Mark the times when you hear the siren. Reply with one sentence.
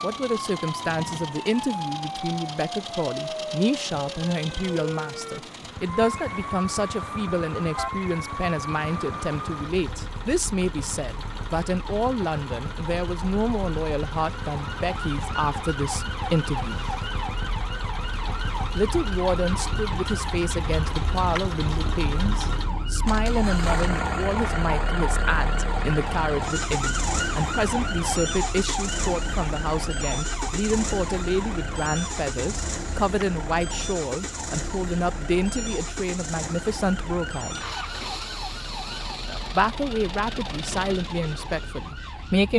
You can hear the siren from 0.0 to 42.5 s.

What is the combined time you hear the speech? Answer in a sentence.
The speech can be heard for 39 seconds in total.